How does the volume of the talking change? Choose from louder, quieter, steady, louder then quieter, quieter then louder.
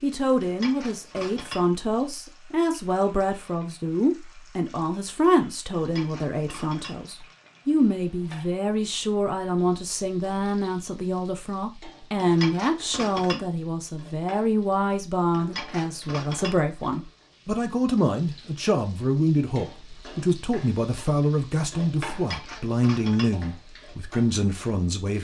steady.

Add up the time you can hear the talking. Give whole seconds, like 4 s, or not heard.
25 s.